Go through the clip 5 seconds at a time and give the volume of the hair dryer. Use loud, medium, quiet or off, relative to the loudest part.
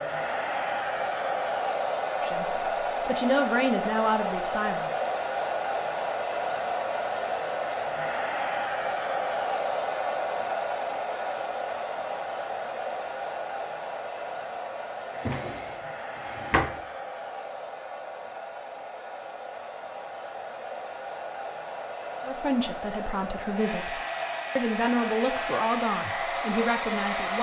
loud, loud, loud, medium, medium, loud.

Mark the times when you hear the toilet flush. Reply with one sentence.
The toilet flush can't be heard in this clip.